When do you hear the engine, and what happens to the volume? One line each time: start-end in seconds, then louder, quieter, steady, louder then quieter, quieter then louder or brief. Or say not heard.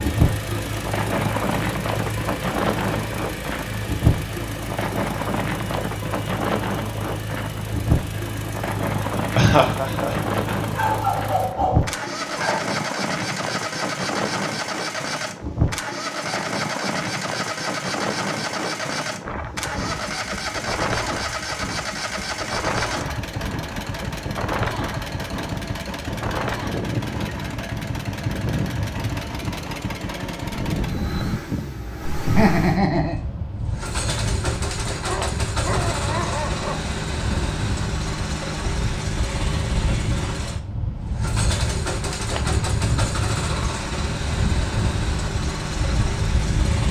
0.0-46.8 steady.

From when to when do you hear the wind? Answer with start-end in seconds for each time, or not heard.
0.0-46.8.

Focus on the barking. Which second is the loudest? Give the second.
11 s.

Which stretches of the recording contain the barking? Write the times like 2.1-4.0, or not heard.
10.7-12.7, 35.0-36.9.